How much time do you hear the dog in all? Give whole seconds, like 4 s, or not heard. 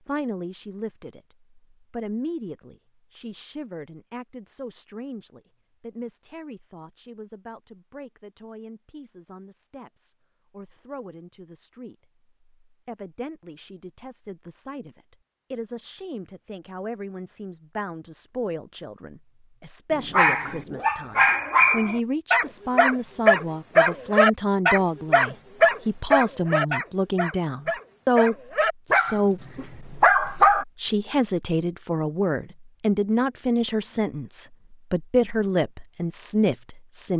11 s.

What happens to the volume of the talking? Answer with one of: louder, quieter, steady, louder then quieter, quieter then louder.
quieter then louder.